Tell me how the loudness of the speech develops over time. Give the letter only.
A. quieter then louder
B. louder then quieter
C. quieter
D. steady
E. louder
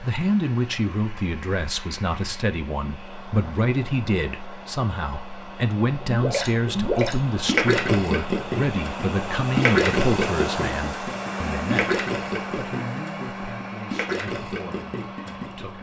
C.